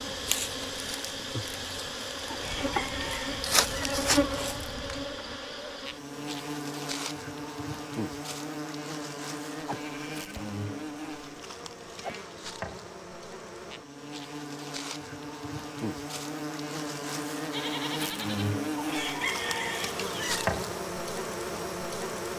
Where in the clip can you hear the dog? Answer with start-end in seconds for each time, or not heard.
not heard.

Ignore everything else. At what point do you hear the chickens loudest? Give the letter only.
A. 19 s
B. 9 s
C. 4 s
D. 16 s
A.